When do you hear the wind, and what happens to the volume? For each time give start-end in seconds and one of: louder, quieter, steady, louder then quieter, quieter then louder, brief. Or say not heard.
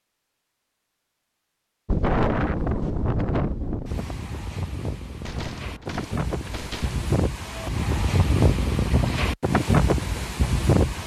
1.9-11.0 quieter then louder.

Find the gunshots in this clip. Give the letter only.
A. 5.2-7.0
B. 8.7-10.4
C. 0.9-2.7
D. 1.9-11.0
A.